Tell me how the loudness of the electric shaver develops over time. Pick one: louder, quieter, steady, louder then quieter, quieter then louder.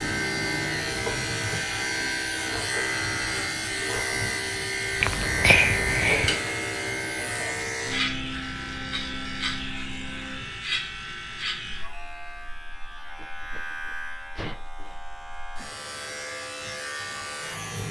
quieter.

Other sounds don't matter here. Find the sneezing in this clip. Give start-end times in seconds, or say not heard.
5.0-6.4, 13.2-14.7.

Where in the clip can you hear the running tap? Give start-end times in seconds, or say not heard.
not heard.